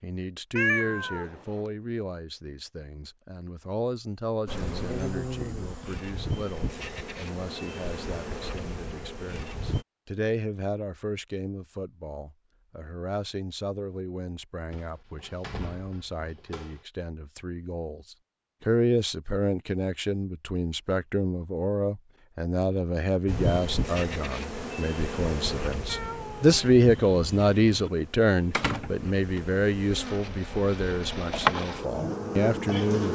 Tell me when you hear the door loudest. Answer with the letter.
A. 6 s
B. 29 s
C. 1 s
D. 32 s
B.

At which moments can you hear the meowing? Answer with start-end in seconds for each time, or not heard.
0.6-1.5, 25.9-27.9.